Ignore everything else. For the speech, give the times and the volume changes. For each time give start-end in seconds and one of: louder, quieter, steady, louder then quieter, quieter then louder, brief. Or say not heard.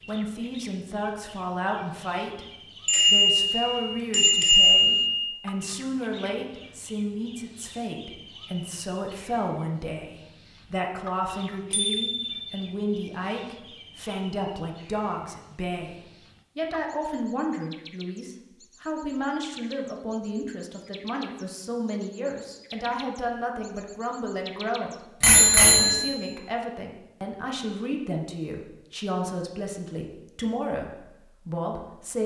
0.1-32.2 steady.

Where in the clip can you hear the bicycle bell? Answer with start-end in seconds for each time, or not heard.
2.9-5.3, 11.7-12.5, 25.2-26.1.